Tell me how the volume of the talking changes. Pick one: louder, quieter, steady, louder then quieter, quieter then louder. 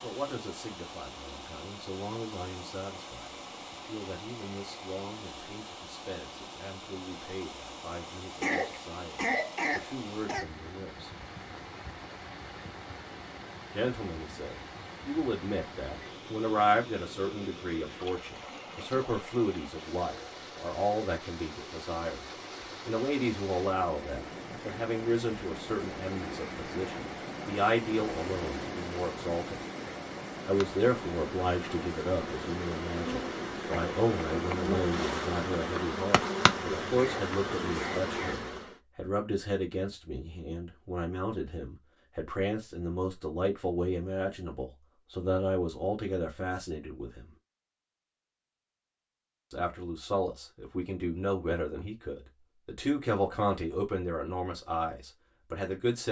louder.